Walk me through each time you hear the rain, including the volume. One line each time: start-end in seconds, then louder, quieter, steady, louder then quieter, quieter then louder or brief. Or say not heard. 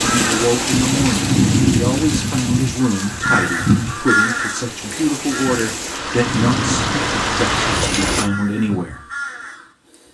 0.0-8.3 quieter then louder.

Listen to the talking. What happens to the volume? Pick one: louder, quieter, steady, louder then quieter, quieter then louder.
steady.